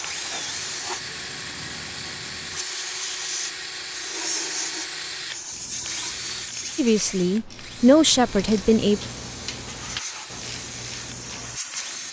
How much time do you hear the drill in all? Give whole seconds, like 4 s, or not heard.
12 s.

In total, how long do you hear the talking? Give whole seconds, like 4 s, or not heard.
2 s.